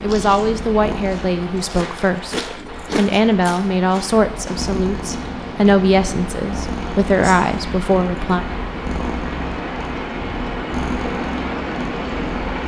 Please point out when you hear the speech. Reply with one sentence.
You can hear the speech from 0.0 to 8.4 s.